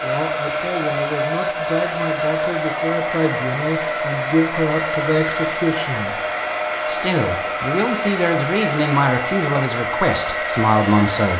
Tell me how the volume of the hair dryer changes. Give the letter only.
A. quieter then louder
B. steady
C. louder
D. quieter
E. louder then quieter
B.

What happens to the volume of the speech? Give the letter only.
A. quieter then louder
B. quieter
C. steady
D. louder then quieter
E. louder
E.